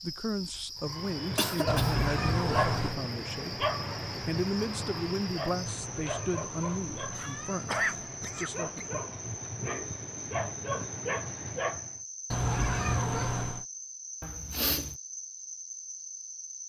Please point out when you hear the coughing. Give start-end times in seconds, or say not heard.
1.4-1.9, 7.2-8.8, 14.2-14.9.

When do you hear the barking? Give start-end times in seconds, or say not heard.
0.8-12.0.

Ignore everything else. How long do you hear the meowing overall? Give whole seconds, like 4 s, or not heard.
5 s.